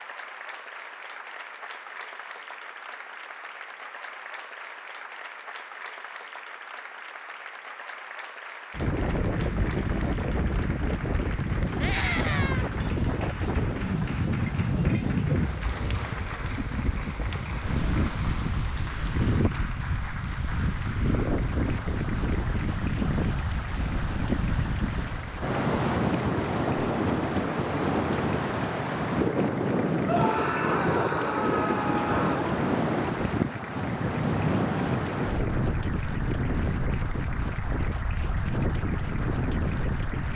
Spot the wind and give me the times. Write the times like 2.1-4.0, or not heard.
8.7-40.3.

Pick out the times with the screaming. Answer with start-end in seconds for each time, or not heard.
11.8-12.7, 30.1-32.5.